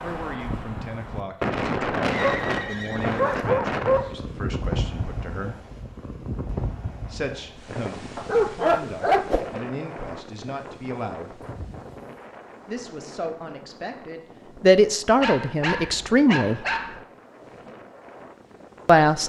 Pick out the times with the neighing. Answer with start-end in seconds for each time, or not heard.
2.1-3.4, 11.4-12.1.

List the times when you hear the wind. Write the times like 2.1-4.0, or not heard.
0.0-19.2.